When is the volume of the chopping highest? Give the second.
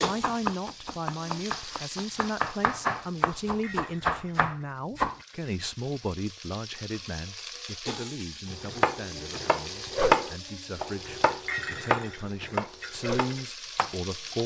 10 s.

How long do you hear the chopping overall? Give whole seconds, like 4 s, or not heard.
11 s.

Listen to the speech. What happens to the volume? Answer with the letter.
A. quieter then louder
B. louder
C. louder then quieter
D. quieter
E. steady
A.